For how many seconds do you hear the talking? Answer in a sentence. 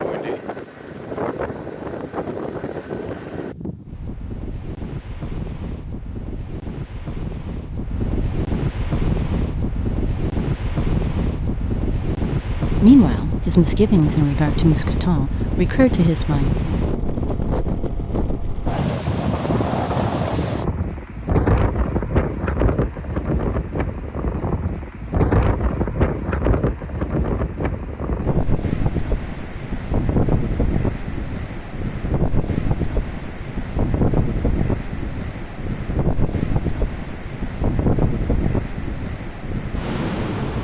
The talking can be heard for 4 seconds in total.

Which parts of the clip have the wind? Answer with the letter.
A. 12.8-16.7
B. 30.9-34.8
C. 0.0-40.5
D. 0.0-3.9
C.